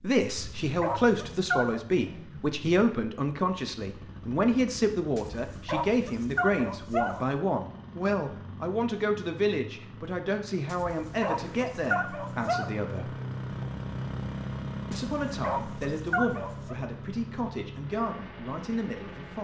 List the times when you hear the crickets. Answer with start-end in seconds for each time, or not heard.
not heard.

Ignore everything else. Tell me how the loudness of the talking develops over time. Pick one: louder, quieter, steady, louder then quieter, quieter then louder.
quieter.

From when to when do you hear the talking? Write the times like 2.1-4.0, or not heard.
0.0-13.1, 14.9-19.4.